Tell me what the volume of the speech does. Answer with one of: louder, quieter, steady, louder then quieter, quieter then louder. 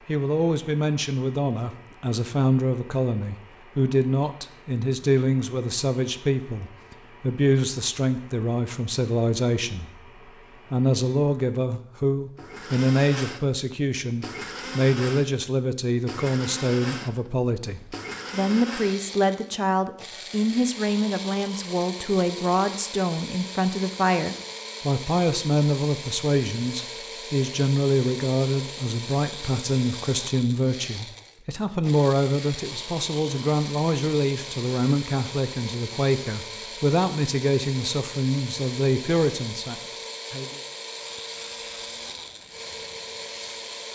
steady.